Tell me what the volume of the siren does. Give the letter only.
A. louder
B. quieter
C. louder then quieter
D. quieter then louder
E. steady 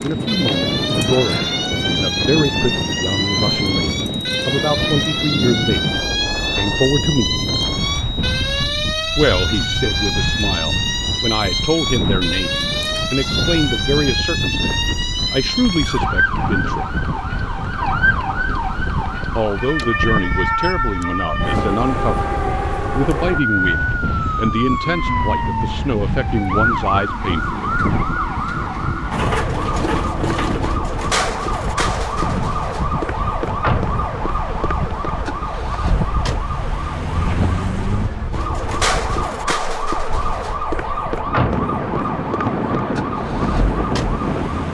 E.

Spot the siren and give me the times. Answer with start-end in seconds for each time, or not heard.
0.0-44.6.